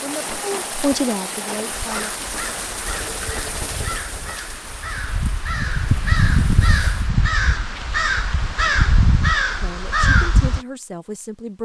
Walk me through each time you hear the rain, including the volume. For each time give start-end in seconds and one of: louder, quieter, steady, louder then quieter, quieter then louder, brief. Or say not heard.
0.0-7.1 quieter.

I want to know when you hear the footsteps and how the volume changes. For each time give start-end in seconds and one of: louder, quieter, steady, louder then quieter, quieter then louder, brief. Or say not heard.
not heard.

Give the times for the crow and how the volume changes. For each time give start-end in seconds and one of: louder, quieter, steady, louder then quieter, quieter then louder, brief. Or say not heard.
1.6-10.6 louder.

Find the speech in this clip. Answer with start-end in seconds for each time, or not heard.
0.0-2.1, 9.6-11.6.